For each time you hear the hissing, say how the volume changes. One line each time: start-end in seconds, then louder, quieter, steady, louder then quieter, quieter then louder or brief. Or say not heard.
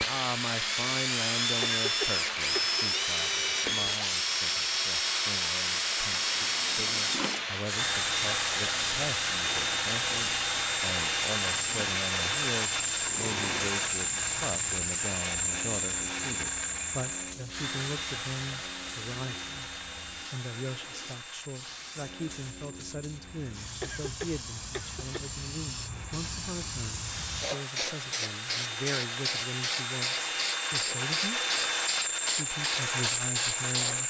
0.0-34.0 quieter then louder.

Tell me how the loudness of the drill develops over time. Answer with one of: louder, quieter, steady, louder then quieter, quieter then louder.
quieter then louder.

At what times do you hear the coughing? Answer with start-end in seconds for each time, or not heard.
1.6-2.8, 23.8-25.3.